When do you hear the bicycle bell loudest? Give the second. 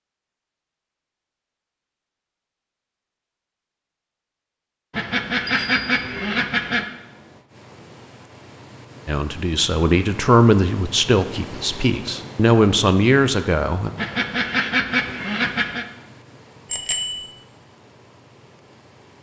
17 s.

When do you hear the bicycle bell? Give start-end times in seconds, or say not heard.
5.5-6.3, 16.7-17.2.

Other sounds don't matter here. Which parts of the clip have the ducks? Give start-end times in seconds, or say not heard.
4.9-6.8, 13.9-15.8.